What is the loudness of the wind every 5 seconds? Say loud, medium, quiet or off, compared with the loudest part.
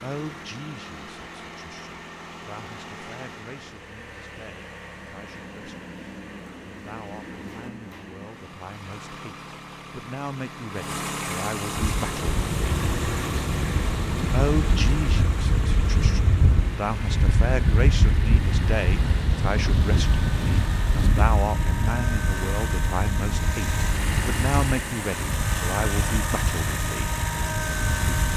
off, off, loud, loud, loud, medium.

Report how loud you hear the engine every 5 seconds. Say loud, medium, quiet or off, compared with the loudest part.
medium, medium, loud, medium, loud, loud.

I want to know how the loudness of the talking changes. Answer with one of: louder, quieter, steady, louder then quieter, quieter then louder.
louder.